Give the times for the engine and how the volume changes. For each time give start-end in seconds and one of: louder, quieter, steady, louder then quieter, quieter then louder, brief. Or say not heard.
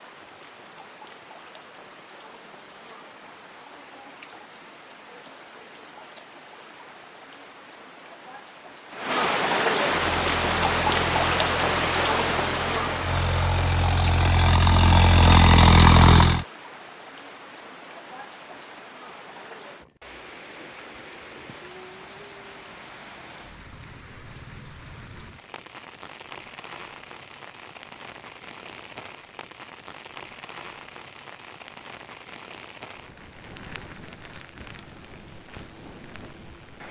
10.0-16.4 louder.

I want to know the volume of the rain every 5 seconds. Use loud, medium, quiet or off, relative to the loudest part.
quiet, medium, loud, quiet, quiet, quiet, quiet, quiet.